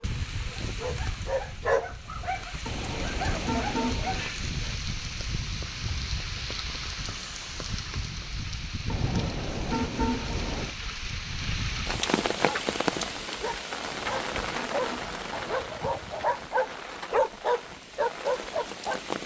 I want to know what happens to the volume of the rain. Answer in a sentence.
The volume of the rain goes up, then down.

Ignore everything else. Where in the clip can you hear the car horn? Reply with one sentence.
You can hear the car horn from 2.6 to 4.3 s, from 8.8 to 10.8 s and from 13.7 to 15.6 s.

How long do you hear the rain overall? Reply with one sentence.
The rain can be heard for 19 seconds in total.